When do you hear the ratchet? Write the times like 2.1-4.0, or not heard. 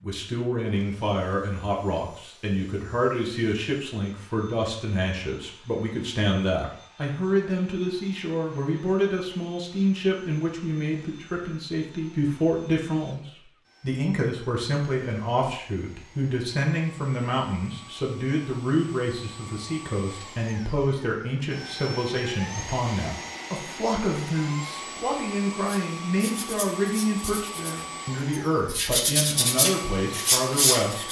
not heard.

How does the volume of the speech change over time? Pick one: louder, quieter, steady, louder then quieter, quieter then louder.
steady.